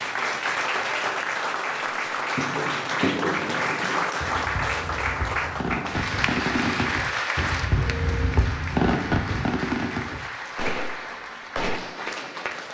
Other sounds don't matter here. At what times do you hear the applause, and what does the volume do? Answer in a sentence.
The applause can be heard from 0.0 to 12.7 s, getting quieter.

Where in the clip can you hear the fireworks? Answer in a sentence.
The fireworks can be heard from 2.4 to 11.8 s.